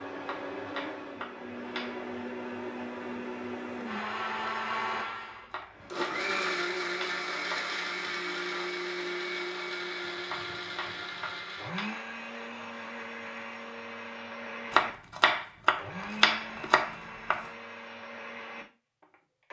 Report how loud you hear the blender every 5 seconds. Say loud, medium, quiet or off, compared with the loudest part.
loud, loud, medium, medium.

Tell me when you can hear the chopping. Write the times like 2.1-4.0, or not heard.
0.2-2.0, 5.5-7.8, 10.2-11.9, 14.7-17.4.